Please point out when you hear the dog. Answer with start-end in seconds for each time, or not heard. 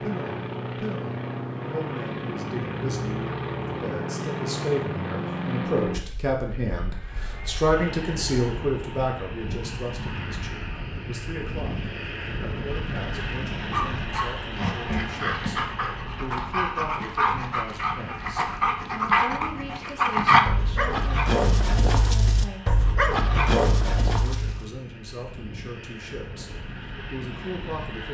13.7-24.6.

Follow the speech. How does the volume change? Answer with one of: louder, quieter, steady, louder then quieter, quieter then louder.
louder then quieter.